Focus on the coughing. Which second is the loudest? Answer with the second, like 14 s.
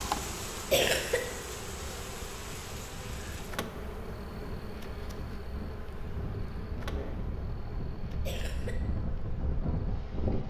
1 s.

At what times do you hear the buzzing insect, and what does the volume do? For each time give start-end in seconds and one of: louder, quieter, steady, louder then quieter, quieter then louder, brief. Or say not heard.
0.0-10.2 quieter.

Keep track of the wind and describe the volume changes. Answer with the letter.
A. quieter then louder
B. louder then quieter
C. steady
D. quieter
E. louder
E.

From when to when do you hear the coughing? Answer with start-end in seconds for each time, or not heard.
0.7-1.2, 8.2-8.8.